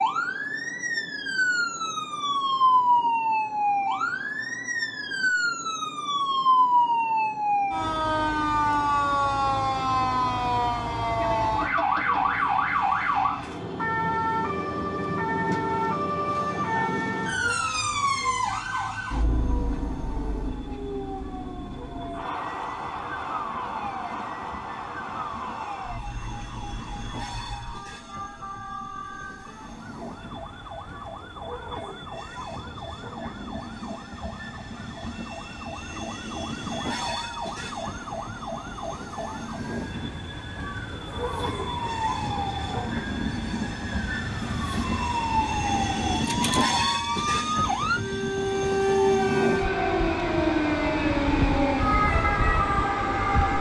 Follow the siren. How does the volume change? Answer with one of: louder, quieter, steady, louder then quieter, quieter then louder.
quieter then louder.